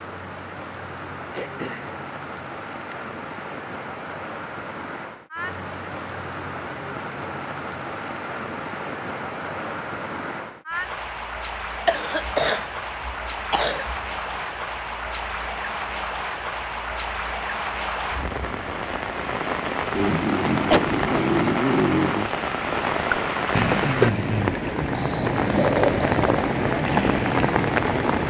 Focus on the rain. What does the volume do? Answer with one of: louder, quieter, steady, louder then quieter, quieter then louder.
louder.